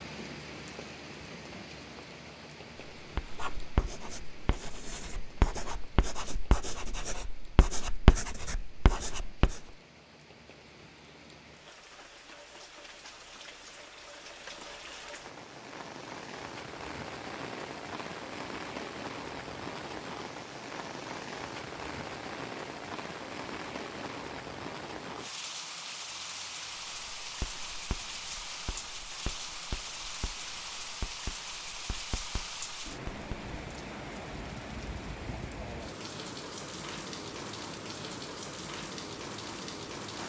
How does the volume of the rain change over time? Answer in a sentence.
The volume of the rain goes up.